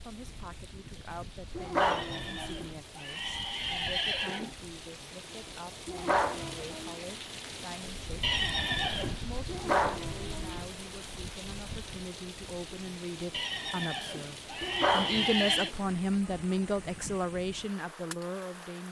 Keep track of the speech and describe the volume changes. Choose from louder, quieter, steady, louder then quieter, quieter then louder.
louder.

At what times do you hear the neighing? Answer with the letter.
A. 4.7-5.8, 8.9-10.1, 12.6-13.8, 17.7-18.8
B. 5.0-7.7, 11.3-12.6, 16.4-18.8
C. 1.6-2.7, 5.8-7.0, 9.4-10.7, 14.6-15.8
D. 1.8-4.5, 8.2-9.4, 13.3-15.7
D.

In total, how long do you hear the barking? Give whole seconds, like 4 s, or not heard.
5 s.